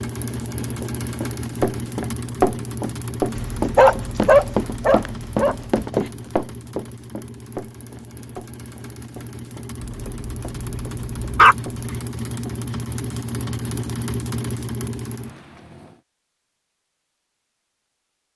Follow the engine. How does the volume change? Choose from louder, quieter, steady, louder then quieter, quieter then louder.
quieter then louder.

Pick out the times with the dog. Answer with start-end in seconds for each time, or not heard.
3.4-6.0, 9.8-11.6.